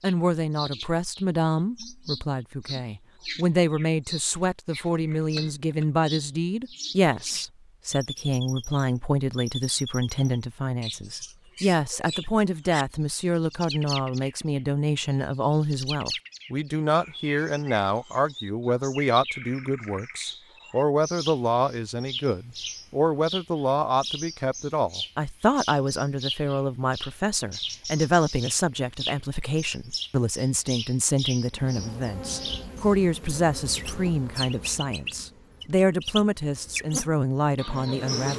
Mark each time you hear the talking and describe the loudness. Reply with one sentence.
You can hear the talking from 0.0 to 38.3 s, at a steady volume.